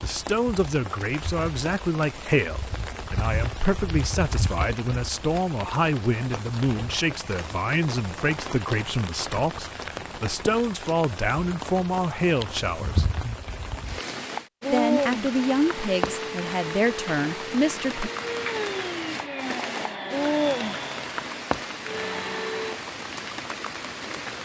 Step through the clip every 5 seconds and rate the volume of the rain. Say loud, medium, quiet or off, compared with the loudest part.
medium, medium, loud, loud, loud.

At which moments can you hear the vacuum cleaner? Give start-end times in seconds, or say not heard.
15.3-22.8.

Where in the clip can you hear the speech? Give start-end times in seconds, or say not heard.
0.0-13.1, 14.7-18.1.